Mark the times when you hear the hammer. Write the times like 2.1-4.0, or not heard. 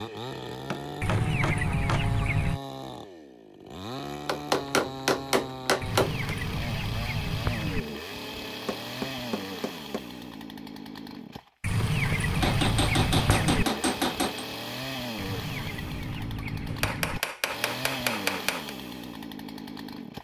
0.7-2.0, 4.2-6.3, 8.4-10.1, 12.4-14.4, 16.7-18.7.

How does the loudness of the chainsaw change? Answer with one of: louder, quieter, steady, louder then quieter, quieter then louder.
steady.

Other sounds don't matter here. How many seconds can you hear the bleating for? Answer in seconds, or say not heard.
not heard.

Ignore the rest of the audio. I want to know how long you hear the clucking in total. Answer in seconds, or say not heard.
8 s.